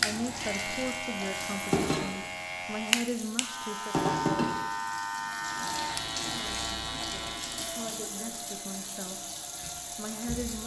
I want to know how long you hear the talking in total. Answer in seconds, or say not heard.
8 s.